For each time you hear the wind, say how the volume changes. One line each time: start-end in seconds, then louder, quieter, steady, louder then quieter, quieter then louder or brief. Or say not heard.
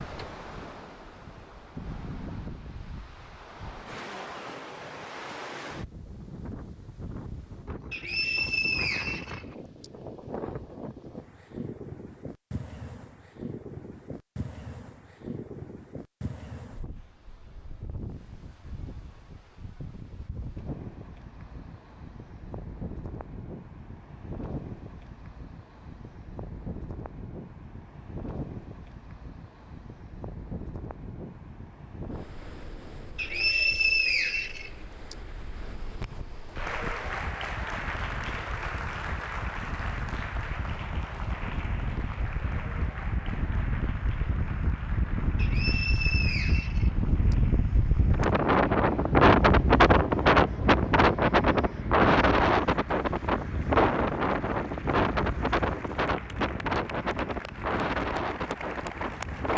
0.0-59.5 louder.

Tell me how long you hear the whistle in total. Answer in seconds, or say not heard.
6 s.